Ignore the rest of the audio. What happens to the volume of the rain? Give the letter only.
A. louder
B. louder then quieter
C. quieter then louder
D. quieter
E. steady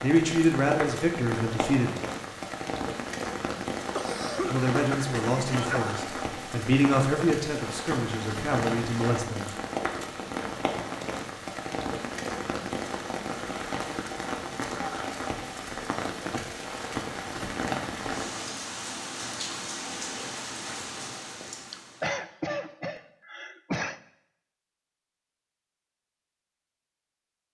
E.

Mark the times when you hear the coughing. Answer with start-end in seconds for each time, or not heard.
3.9-6.0, 21.7-24.0.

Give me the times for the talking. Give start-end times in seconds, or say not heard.
0.0-1.9, 4.5-9.5.